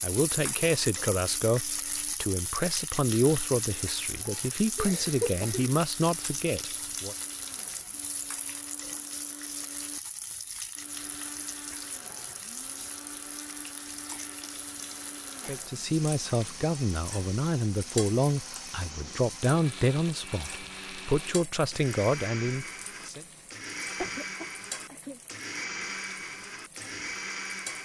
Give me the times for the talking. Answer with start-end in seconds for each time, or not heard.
0.0-7.2, 15.4-23.2.